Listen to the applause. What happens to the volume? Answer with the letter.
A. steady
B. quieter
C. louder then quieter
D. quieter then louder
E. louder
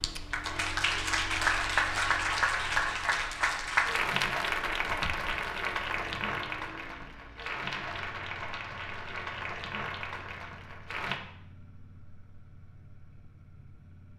B.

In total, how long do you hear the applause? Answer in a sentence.
The applause can be heard for 11 seconds in total.